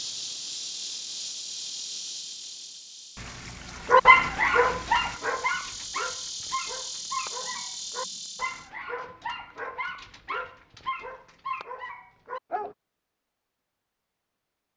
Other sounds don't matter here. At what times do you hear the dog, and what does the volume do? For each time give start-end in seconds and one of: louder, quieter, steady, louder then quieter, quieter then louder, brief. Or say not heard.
3.9-12.8 quieter.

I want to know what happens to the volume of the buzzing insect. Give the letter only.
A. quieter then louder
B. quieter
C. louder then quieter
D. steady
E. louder
A.